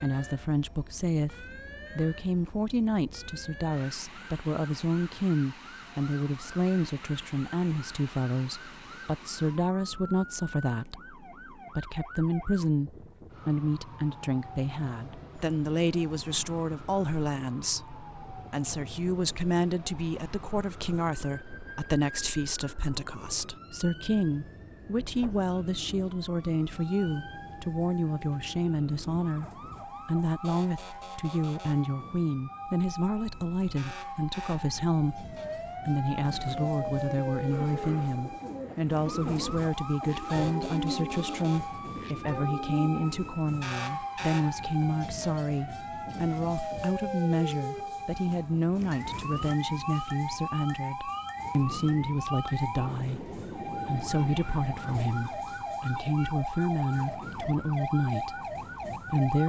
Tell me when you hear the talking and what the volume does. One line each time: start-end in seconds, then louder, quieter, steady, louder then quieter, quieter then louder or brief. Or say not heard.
0.0-59.4 steady.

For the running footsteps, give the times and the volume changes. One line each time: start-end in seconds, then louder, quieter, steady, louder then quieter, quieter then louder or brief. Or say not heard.
not heard.